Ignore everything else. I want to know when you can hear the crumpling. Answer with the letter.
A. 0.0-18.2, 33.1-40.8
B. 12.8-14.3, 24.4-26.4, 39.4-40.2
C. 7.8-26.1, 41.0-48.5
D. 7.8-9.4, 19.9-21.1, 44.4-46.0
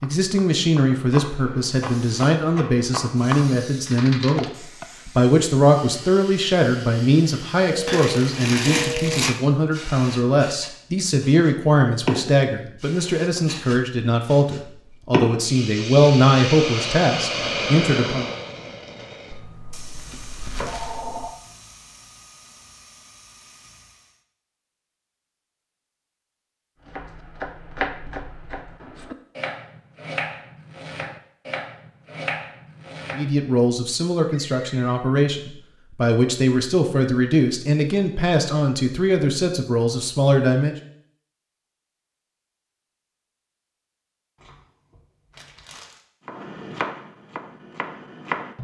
D.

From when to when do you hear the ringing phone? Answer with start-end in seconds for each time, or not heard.
7.7-9.2, 19.3-21.3, 34.3-35.1.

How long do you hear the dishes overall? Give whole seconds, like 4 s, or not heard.
not heard.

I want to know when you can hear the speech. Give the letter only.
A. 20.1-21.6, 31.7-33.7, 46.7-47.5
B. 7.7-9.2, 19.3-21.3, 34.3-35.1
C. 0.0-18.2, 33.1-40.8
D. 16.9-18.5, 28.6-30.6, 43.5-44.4
C.